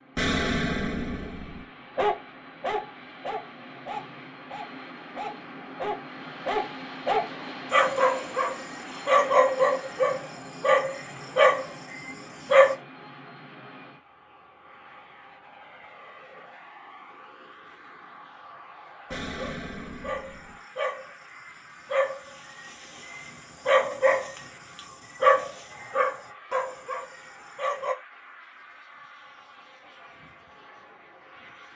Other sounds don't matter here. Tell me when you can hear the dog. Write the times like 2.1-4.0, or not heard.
1.9-12.8, 19.2-27.9.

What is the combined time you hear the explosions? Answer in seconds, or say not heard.
3 s.